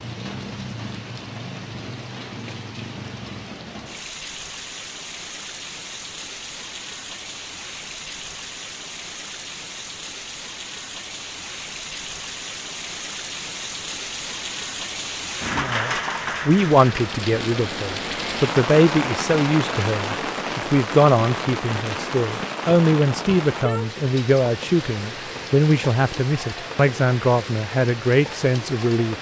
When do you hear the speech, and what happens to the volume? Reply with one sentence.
The speech can be heard from 15.6 to 29.1 s, at a steady volume.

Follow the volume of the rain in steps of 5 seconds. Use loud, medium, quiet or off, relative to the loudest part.
medium, medium, medium, loud, loud, medium.